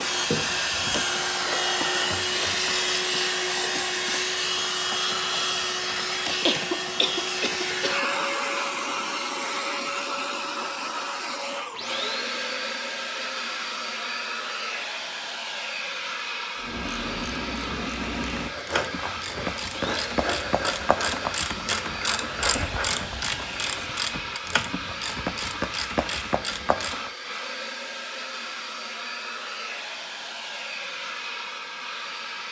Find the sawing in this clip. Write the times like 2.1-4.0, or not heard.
18.5-24.0.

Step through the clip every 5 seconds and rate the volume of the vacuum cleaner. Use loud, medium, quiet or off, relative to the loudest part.
loud, loud, medium, medium, medium, medium, medium.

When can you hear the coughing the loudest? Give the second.
7 s.